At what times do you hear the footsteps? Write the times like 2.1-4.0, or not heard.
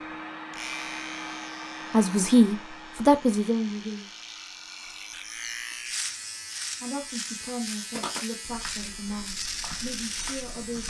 7.4-10.8.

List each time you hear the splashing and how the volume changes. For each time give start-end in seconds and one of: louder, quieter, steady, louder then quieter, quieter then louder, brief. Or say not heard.
not heard.